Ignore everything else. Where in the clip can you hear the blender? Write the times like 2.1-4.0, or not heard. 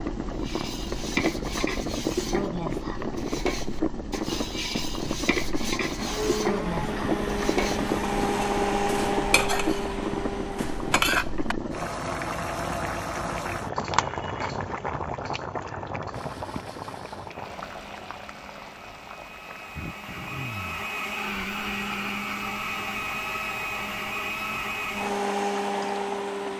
6.0-11.0, 16.1-26.5.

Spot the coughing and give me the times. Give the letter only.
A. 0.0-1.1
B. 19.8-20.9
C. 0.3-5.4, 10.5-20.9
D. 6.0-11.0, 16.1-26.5
B.